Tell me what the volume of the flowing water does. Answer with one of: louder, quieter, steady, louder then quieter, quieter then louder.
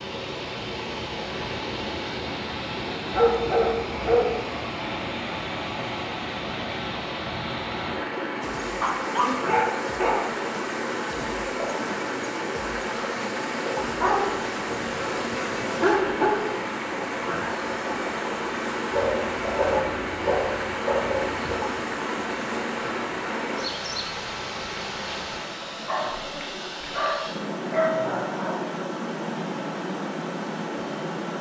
steady.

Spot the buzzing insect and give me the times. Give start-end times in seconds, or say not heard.
8.4-25.4.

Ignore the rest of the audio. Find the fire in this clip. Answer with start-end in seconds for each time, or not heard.
not heard.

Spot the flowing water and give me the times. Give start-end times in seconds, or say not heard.
0.0-31.3.